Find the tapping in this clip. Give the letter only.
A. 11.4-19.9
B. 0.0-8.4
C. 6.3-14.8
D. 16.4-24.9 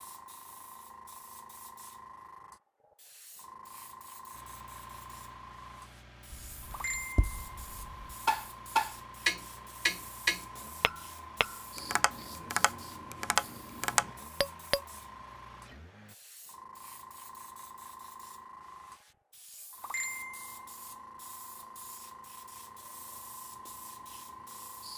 C.